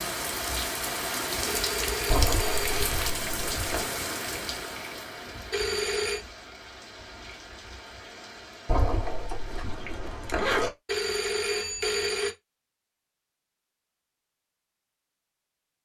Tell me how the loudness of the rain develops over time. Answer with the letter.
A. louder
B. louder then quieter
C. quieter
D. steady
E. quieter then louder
C.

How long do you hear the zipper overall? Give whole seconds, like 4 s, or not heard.
4 s.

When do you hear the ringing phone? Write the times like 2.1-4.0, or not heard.
1.4-2.9, 5.5-6.2, 10.8-12.3.